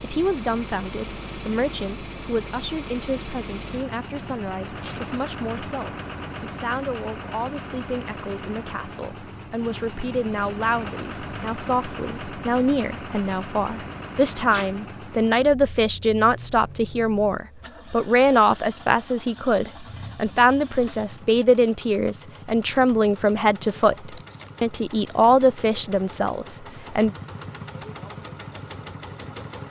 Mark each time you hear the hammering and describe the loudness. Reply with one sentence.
You can't hear the hammering here.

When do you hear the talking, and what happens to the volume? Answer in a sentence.
The talking can be heard from 0.0 to 27.1 s, getting louder.